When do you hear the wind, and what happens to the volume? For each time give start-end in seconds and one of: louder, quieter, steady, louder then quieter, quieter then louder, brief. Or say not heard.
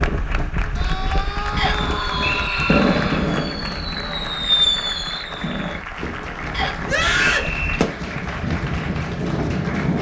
0.0-9.9 quieter then louder.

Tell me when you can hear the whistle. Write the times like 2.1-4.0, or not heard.
1.6-2.8, 6.5-7.8.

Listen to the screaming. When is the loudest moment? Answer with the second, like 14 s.
7 s.